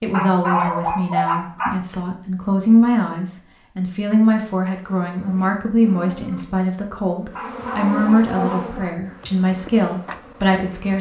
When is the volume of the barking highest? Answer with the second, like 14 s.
1 s.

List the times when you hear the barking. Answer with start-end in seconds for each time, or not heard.
0.1-1.8, 7.3-8.9.